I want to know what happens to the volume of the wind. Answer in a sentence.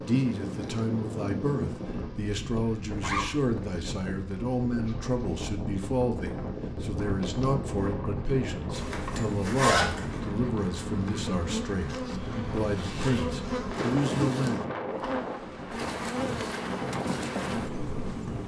The loudness of the wind stays about the same.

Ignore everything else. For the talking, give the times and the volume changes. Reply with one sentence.
The talking can be heard from 0.0 to 14.6 s, at a steady volume.